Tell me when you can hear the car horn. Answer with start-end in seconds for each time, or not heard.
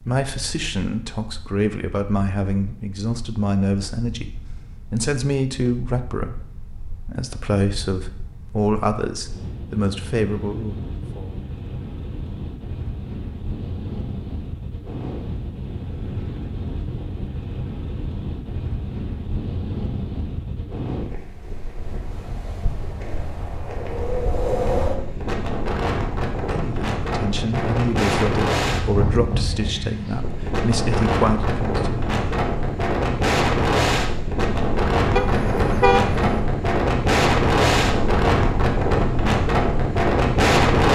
35.1-36.4.